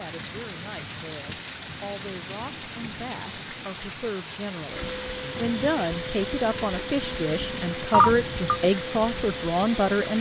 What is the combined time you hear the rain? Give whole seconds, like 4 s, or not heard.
10 s.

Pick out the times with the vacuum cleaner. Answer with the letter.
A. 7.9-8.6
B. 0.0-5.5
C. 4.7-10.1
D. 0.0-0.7
C.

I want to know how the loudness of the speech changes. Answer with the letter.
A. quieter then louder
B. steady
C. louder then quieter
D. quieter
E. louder
E.